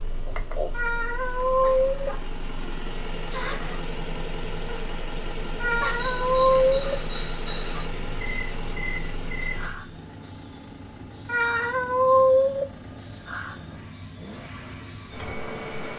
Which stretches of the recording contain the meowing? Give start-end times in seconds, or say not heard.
0.7-2.1, 5.6-7.0, 11.2-12.7.